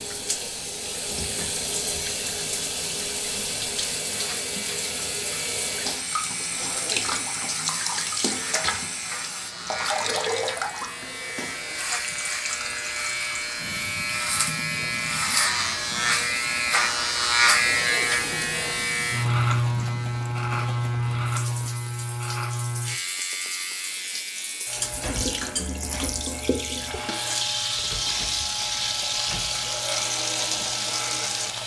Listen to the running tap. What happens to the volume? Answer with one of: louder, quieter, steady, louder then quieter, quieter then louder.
quieter then louder.